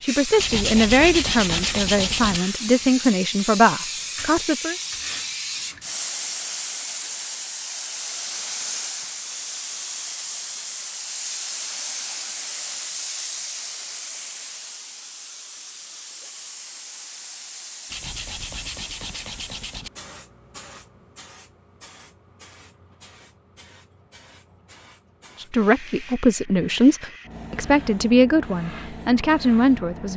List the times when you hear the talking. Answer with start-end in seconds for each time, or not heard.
0.0-4.8, 25.4-30.1.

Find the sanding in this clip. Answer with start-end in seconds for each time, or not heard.
0.3-2.4, 17.9-19.9.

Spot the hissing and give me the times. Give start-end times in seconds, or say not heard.
0.0-30.1.